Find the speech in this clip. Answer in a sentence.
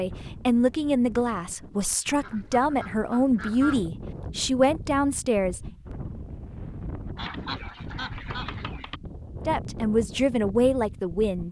You can hear the speech from 0.0 to 5.6 s and from 9.4 to 11.4 s.